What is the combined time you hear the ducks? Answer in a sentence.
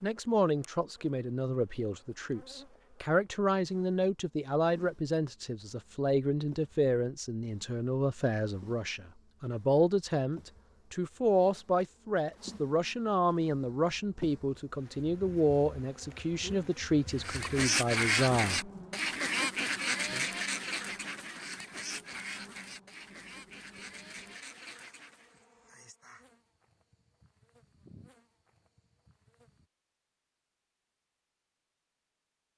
The ducks can be heard for 8 seconds in total.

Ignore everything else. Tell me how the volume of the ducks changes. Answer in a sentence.
The volume of the ducks goes down.